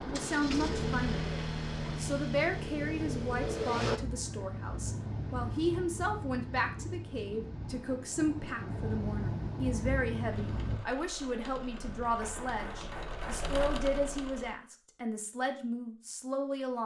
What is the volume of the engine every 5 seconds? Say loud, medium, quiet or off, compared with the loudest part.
loud, off, medium, off.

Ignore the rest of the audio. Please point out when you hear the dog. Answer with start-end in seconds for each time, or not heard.
not heard.